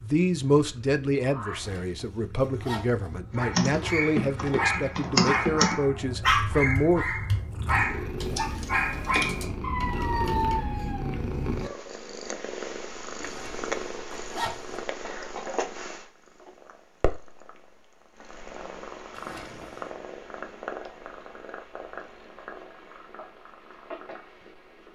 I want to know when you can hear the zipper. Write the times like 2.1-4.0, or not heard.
1.5-3.1, 13.2-14.8, 19.1-19.9.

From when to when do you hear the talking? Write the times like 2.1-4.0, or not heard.
0.0-7.0.